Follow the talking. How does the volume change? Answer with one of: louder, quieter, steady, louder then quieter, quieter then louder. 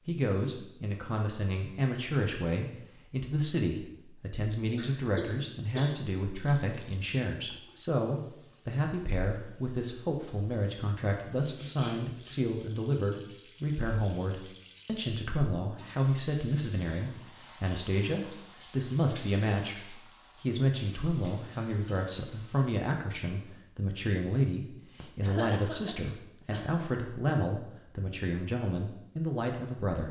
steady.